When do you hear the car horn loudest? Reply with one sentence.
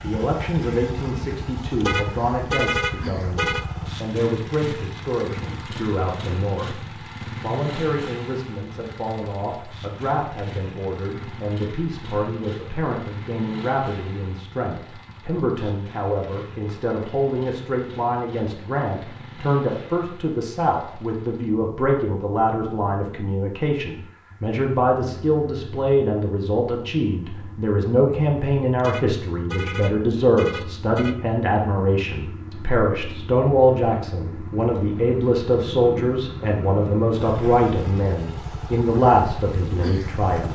The loudest moment of the car horn is at 3 seconds.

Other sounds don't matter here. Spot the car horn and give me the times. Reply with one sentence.
You can hear the car horn from 1.8 to 3.6 s and from 28.8 to 31.2 s.